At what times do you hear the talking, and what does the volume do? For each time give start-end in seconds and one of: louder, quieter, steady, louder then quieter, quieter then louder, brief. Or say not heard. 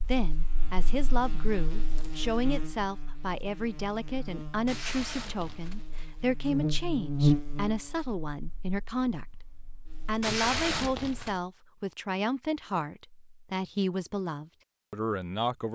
0.0-15.7 steady.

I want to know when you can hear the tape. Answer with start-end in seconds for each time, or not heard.
4.7-5.8, 10.2-11.4.